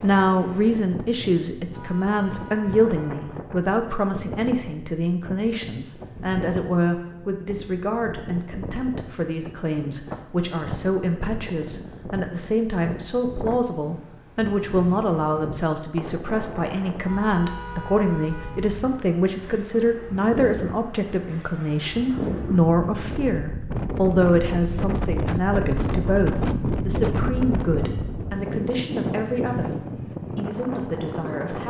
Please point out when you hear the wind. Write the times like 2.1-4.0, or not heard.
0.0-31.6.